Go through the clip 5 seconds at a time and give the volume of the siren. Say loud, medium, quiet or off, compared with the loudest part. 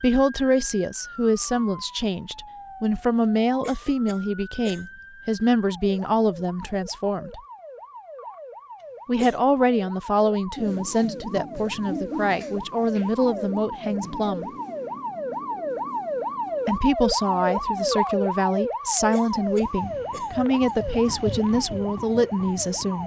quiet, quiet, medium, loud, medium.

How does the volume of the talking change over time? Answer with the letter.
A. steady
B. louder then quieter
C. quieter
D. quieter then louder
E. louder
A.